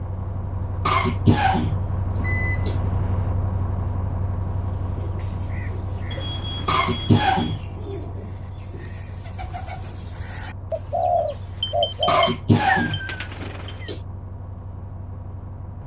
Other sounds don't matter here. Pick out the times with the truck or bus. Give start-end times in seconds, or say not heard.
0.0-15.8.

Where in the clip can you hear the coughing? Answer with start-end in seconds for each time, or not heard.
0.8-2.8, 6.7-7.6, 12.1-13.9.